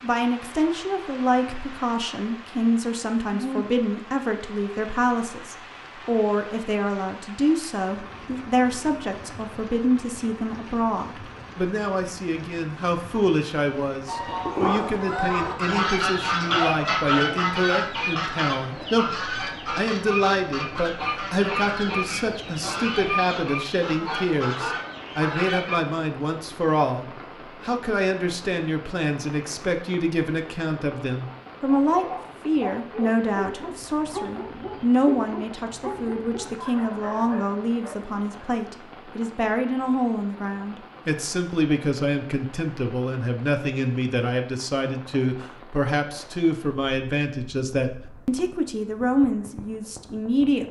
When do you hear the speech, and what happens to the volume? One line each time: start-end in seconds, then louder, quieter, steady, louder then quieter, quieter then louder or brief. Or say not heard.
0.0-50.6 steady.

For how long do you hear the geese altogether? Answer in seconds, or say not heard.
12 s.